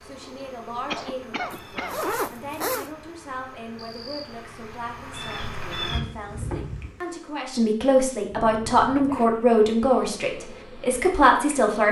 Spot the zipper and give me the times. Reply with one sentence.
You can hear the zipper from 1.5 to 2.9 s and from 8.9 to 9.6 s.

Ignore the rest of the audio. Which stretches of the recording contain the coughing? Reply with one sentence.
You can hear the coughing from 0.8 to 2.1 s.